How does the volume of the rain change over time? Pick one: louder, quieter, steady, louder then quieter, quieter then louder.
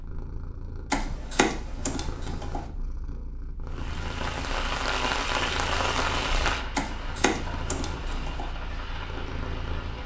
quieter.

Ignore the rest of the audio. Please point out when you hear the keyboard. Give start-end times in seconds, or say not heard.
0.9-2.6, 6.8-8.5.